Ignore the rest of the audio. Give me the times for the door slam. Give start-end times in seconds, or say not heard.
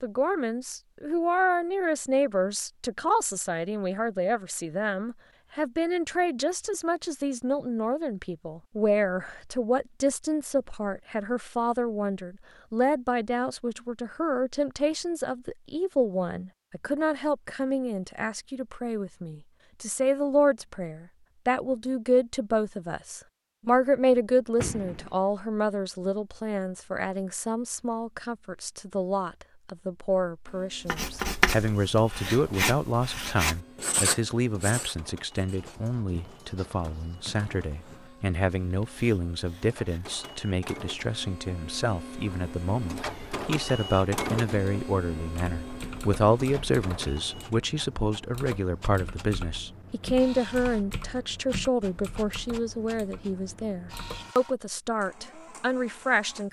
24.1-25.2.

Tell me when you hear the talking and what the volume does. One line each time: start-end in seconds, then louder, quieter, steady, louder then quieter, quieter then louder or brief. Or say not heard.
0.0-56.4 steady.